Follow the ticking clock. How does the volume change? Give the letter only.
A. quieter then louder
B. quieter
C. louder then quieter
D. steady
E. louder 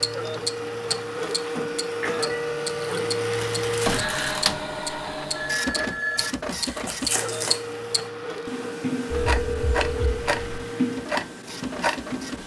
D.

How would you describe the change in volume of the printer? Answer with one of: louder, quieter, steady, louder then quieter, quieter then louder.
quieter.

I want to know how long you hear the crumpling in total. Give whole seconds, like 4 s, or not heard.
2 s.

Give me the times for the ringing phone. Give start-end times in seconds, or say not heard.
1.6-2.3, 5.3-6.3, 9.1-10.4.